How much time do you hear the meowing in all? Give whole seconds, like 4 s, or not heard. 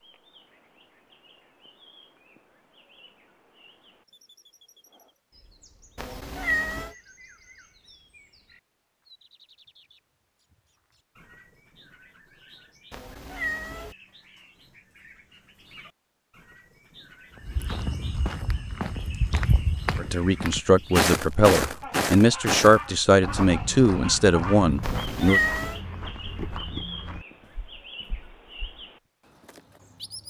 3 s.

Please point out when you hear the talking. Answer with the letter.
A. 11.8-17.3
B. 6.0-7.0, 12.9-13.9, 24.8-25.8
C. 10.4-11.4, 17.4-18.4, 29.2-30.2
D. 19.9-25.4
D.